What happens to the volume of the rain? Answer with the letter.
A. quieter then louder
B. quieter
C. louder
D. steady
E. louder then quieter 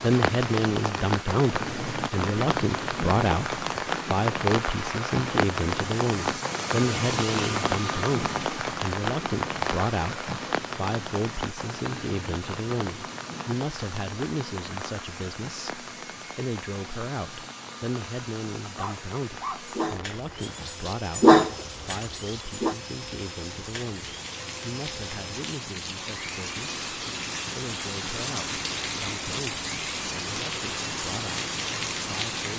A.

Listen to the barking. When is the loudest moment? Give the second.
21 s.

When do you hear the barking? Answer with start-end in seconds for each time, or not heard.
18.6-22.8.